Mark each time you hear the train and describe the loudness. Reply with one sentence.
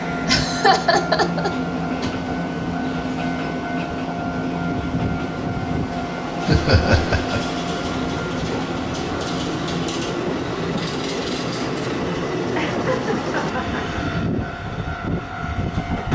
You can hear the train from 0.0 to 16.0 s, at a steady volume.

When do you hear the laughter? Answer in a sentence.
You can hear the laughter from 0.2 to 1.6 s, from 6.5 to 7.4 s and from 12.6 to 14.0 s.